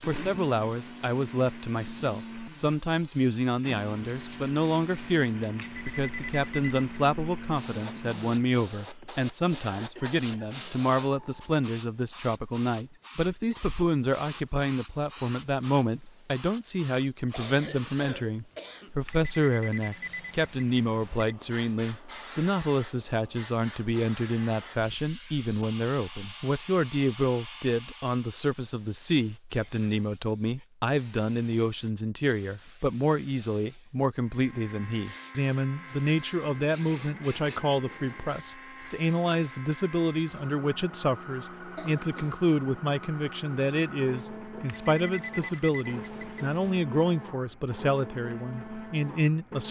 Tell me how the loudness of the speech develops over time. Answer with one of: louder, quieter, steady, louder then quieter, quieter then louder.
steady.